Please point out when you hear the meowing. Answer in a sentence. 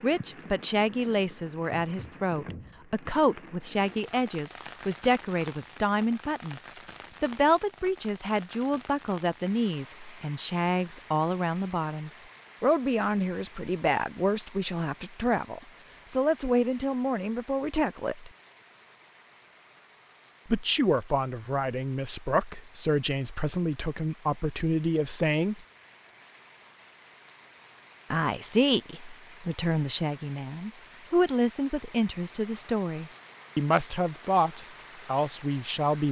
You can't hear the meowing here.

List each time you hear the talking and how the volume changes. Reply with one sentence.
The talking can be heard from 0.0 to 18.3 s, at a steady volume; from 20.5 to 25.6 s, at a steady volume; and from 28.1 to 36.0 s, at a steady volume.